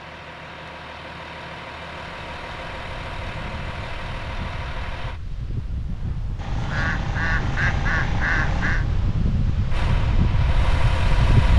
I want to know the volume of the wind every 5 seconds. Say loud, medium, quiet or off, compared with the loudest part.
quiet, medium, loud.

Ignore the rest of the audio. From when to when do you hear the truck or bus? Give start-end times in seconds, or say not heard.
0.0-5.2, 9.7-11.5.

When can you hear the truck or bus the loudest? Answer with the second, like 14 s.
11 s.